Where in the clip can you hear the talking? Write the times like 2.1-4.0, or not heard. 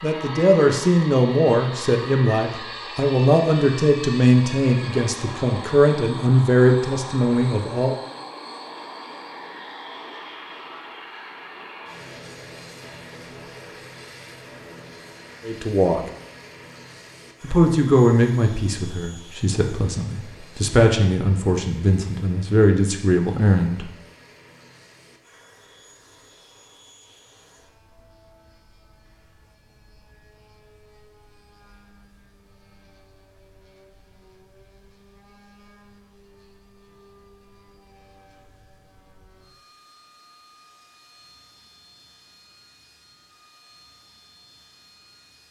0.0-8.0, 15.4-16.0, 17.4-23.9.